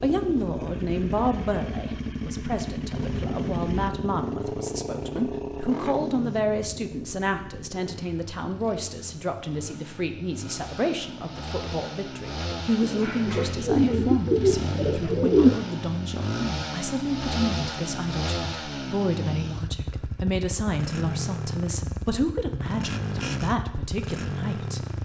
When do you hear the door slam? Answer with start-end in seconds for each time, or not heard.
not heard.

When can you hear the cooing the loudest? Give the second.
15 s.